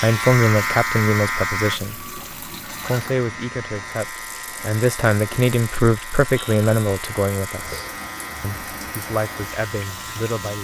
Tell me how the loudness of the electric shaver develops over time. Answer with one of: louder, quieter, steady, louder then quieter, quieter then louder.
quieter.